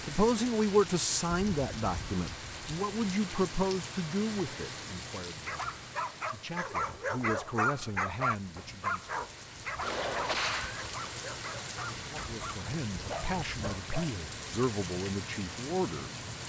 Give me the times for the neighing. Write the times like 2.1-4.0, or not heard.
9.8-10.8.